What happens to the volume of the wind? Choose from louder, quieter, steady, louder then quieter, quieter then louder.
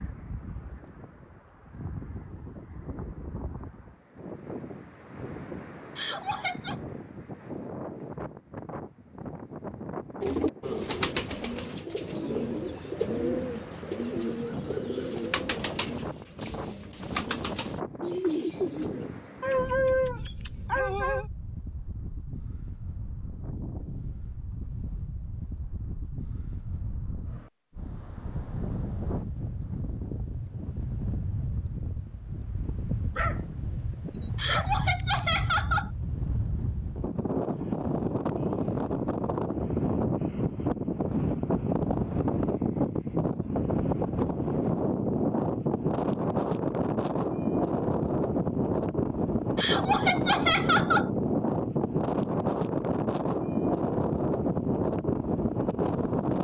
louder.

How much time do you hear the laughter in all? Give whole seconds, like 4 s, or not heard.
4 s.